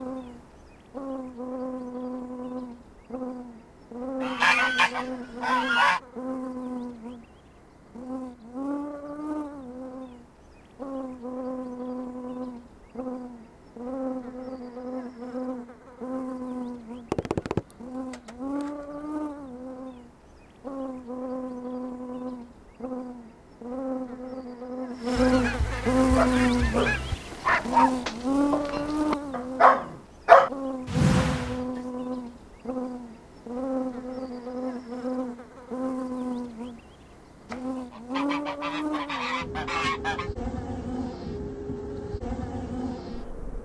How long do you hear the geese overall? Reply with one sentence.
The geese can be heard for 8 seconds in total.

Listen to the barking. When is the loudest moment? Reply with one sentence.
The loudest moment of the barking is at 30 seconds.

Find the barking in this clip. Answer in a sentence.
The barking can be heard from 26.1 to 31.6 s.